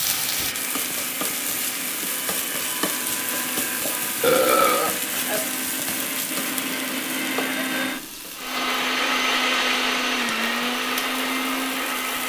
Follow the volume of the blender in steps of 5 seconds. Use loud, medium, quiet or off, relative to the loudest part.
medium, loud, loud.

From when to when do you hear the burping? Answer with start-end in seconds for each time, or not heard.
4.2-5.4.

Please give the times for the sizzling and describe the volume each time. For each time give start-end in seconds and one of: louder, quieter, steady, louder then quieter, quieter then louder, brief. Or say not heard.
0.0-12.2 quieter.